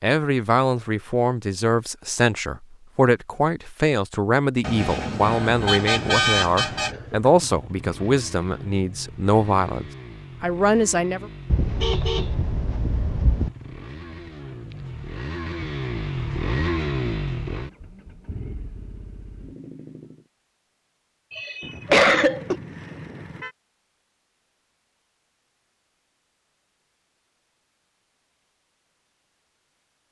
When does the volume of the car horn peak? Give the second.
6 s.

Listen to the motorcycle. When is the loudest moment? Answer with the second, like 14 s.
17 s.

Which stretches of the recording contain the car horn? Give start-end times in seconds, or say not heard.
4.6-7.0, 11.4-13.5, 21.6-23.6.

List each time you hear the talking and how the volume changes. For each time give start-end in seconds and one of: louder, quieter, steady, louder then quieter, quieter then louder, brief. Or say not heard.
0.0-11.3 steady.